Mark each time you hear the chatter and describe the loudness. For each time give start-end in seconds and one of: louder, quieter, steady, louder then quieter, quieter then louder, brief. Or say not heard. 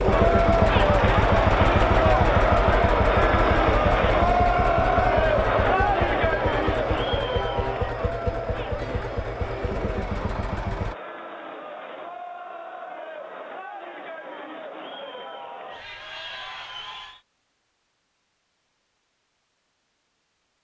0.0-17.2 quieter.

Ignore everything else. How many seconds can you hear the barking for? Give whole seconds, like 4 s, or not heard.
not heard.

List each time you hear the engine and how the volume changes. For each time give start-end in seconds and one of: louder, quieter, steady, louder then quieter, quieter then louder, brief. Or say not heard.
0.0-10.9 quieter.